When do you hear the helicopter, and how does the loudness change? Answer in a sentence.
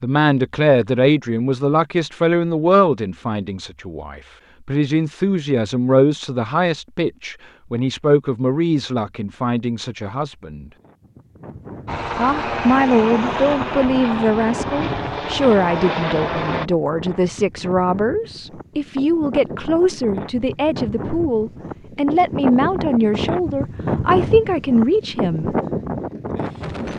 The helicopter can be heard from 11.8 to 16.7 s, at a steady volume.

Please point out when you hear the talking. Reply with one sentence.
The talking can be heard from 0.0 to 10.7 s and from 12.2 to 25.6 s.